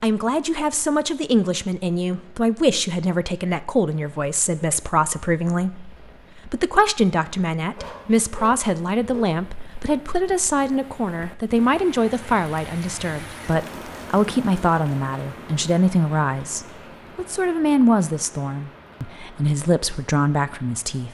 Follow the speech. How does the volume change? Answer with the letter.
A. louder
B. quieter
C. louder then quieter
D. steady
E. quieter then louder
D.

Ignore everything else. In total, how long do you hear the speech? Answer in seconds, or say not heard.
21 s.